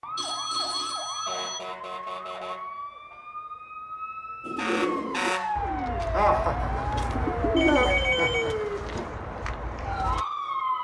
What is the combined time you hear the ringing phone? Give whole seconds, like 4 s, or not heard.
3 s.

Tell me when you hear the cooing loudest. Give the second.
8 s.